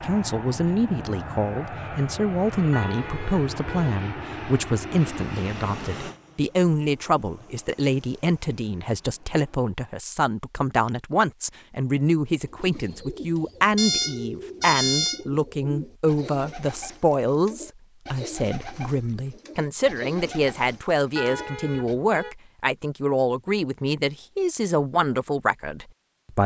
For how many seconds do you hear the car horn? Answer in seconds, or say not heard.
4 s.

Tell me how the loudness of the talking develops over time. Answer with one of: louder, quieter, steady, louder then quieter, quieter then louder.
steady.